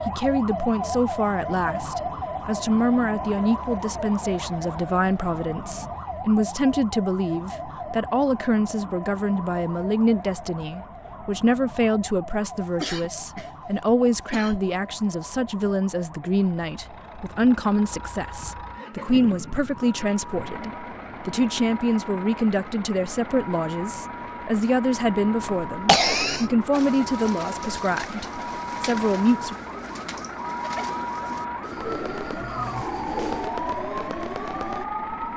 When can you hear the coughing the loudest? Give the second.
26 s.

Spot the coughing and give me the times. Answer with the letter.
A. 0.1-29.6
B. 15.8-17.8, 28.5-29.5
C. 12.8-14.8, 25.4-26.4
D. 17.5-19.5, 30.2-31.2
C.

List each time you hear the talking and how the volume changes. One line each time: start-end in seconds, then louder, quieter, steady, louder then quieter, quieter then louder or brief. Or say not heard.
0.1-29.6 steady.